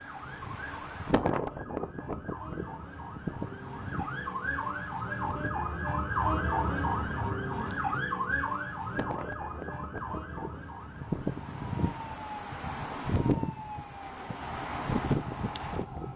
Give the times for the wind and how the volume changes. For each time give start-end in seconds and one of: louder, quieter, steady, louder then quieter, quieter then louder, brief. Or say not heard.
0.0-16.1 quieter then louder.